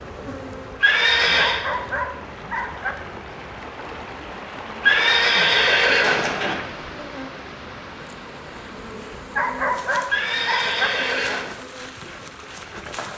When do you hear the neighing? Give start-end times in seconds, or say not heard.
0.8-1.6, 4.8-6.5, 10.1-11.5.